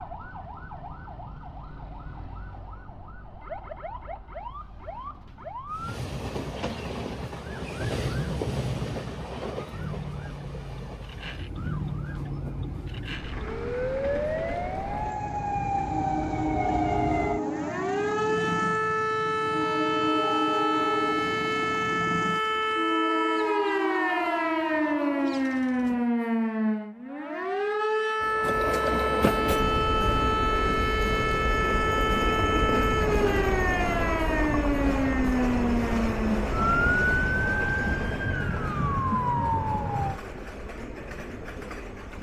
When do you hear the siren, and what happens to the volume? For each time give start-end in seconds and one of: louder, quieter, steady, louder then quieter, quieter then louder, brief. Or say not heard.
0.0-40.2 louder.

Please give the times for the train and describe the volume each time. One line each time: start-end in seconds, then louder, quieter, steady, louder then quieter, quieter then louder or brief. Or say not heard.
5.7-26.1 quieter then louder
28.2-42.1 quieter.